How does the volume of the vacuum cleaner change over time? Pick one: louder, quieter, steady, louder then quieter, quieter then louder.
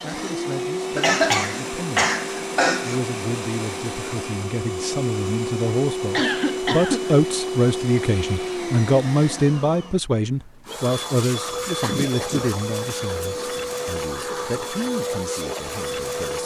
steady.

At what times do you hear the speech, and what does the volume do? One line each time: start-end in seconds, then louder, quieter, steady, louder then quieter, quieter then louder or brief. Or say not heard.
0.0-2.1 brief
2.8-16.4 louder then quieter.